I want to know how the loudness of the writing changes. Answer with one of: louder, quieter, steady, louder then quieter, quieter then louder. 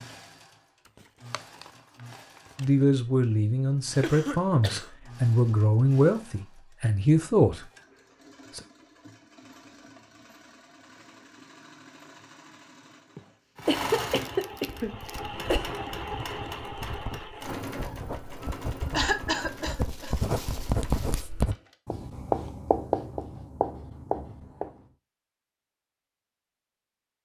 louder.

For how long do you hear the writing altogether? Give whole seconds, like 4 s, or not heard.
10 s.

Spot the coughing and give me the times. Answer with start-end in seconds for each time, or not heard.
4.0-4.9, 13.2-15.7, 18.9-20.2.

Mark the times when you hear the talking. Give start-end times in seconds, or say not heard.
2.5-7.7.